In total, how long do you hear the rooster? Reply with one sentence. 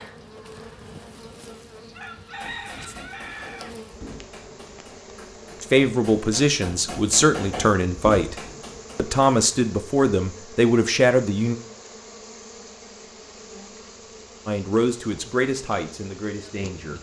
The rooster can be heard for 2 seconds in total.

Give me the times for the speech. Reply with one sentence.
You can hear the speech from 5.6 to 8.3 s, from 8.9 to 11.6 s and from 14.4 to 16.9 s.